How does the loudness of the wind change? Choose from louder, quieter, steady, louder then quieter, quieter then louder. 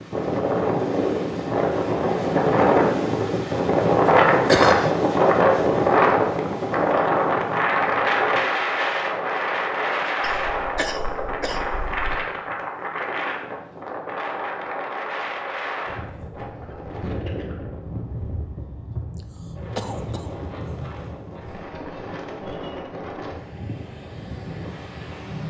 quieter.